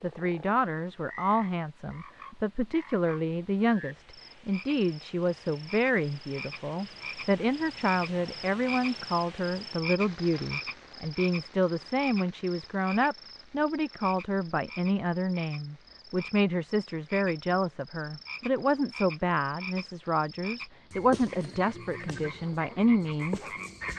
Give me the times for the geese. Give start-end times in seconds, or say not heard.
not heard.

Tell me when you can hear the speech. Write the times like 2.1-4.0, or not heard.
0.0-23.5.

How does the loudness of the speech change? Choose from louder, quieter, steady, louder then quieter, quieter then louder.
steady.